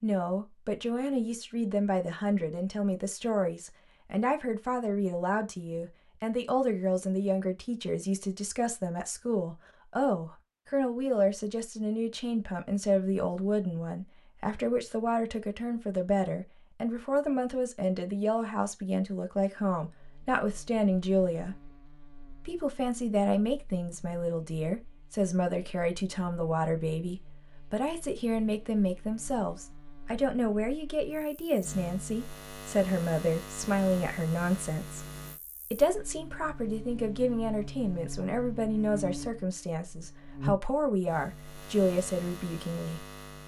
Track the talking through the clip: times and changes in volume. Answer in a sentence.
You can hear the talking from 0.0 to 21.6 s, at a steady volume; from 22.4 to 35.0 s, at a steady volume; and from 35.7 to 43.0 s, at a steady volume.